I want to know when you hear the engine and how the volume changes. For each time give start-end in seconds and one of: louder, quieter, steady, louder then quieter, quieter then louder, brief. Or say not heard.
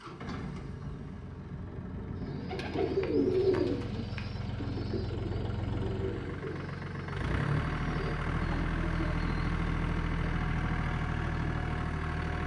0.0-12.4 louder.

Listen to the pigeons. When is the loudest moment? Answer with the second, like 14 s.
3 s.